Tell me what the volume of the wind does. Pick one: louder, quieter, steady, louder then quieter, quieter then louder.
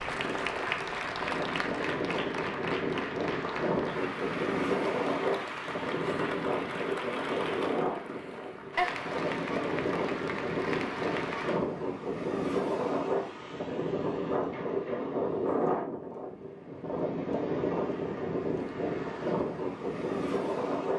steady.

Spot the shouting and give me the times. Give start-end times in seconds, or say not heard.
not heard.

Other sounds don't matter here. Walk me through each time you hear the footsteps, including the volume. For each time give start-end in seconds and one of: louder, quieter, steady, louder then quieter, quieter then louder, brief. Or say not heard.
not heard.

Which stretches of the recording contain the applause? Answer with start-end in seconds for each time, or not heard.
0.0-11.6.